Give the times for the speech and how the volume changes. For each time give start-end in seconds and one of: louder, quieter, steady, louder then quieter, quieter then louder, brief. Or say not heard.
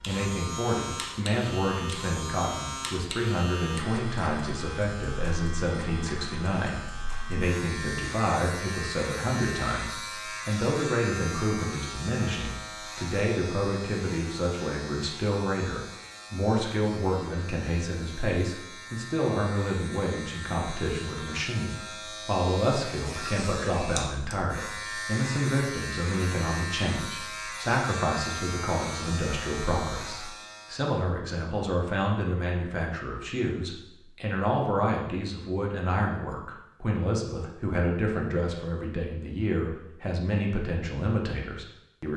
0.1-42.1 steady.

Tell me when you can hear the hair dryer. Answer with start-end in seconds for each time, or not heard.
not heard.